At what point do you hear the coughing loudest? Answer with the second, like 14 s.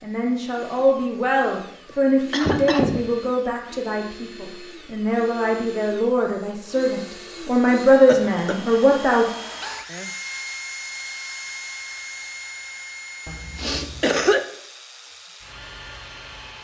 14 s.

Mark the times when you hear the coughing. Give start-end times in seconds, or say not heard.
1.9-3.0, 8.1-8.8, 13.2-14.4.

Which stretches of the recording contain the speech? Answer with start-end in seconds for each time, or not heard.
0.0-9.2.